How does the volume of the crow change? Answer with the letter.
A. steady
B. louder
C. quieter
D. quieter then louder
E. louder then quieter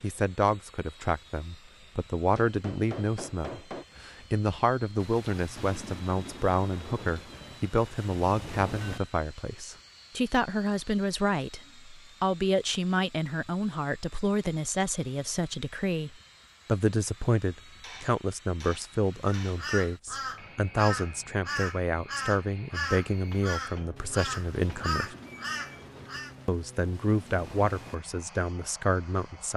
A.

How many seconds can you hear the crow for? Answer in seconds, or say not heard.
7 s.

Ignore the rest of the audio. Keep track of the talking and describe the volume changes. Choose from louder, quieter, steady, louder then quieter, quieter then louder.
steady.